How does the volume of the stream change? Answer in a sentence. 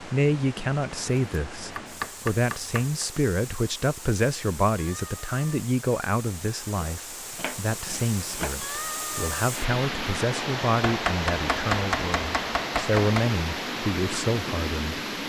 The volume of the stream goes up.